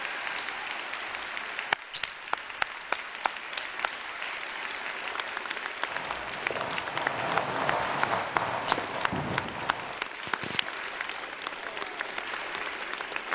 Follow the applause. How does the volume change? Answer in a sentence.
The loudness of the applause stays about the same.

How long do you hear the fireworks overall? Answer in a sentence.
The fireworks can be heard for 5 seconds in total.